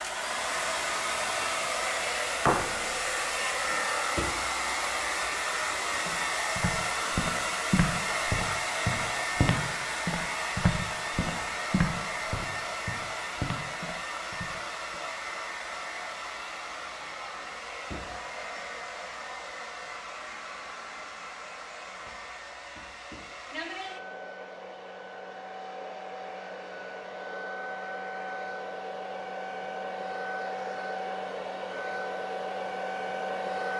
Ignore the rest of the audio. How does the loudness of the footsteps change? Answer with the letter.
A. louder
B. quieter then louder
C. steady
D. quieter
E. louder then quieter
D.